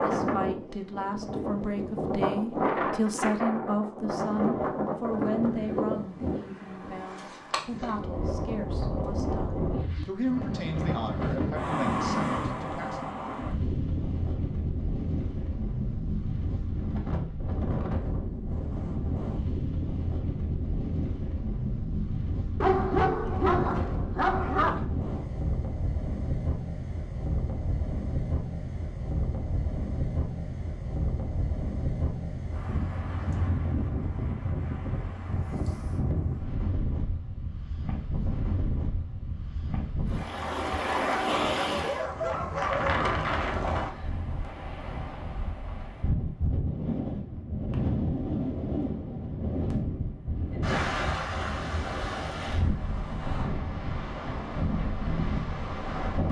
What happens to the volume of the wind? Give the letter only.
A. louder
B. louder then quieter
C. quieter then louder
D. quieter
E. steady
E.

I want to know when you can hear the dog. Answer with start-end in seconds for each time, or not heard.
22.6-24.9, 41.2-43.1.